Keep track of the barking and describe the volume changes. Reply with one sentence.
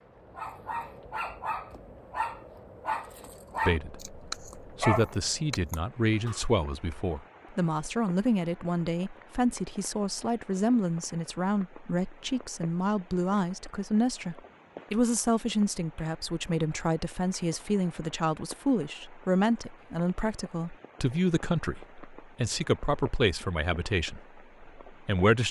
The volume of the barking goes up, then down.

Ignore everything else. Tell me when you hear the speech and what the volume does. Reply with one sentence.
The speech can be heard from 3.6 to 25.4 s, at a steady volume.